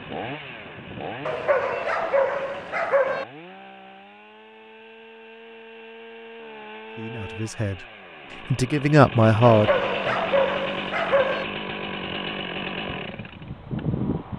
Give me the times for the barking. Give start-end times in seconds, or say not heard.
1.2-3.2, 9.4-11.4.